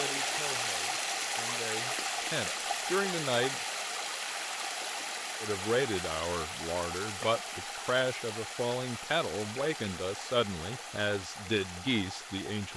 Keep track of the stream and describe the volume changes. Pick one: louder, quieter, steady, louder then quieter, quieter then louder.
quieter.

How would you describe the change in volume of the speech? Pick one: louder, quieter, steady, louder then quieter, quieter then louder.
louder.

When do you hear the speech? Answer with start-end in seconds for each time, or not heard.
0.0-3.6, 5.4-12.7.